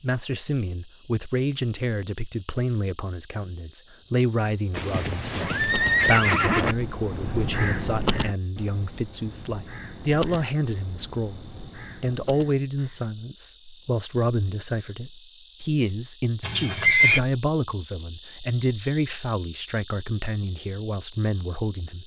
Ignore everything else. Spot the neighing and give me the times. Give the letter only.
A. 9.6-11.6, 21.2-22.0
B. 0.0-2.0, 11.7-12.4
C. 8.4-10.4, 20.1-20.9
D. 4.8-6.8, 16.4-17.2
D.